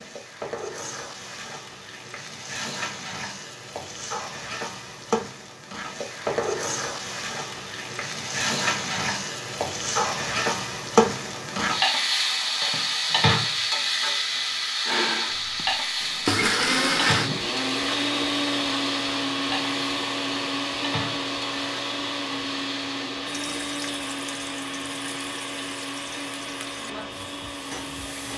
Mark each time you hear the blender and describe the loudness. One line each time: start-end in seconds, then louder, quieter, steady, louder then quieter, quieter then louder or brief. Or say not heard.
14.8-28.3 quieter.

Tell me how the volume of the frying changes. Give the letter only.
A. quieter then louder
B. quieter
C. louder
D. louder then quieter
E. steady
D.